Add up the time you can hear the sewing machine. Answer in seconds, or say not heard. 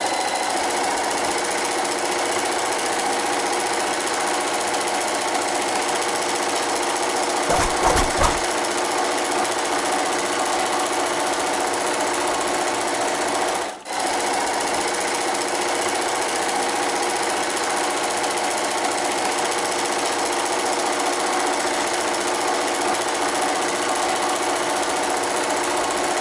26 s.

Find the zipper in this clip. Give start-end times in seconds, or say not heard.
7.5-8.4.